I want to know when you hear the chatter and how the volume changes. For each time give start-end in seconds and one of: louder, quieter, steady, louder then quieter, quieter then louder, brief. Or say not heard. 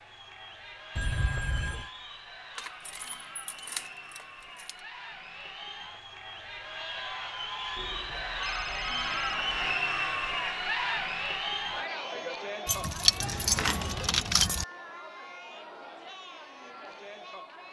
0.0-17.6 louder then quieter.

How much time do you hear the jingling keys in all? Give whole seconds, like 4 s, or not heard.
4 s.